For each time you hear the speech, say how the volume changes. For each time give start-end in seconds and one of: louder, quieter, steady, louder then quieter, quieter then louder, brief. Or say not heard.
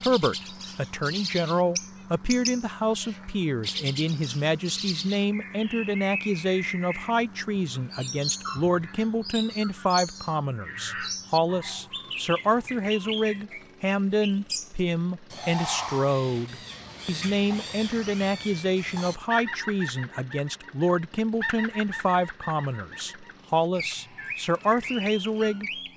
0.0-25.7 steady.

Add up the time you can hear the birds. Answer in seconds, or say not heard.
26 s.